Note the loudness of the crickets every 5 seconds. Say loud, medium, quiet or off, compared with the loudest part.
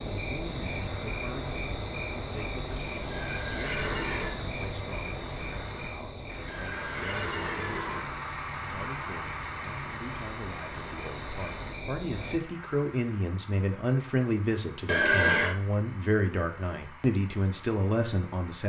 loud, medium, medium, off.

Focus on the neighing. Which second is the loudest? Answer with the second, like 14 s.
15 s.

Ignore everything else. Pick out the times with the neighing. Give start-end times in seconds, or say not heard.
3.1-4.3, 6.5-8.0, 14.8-15.6.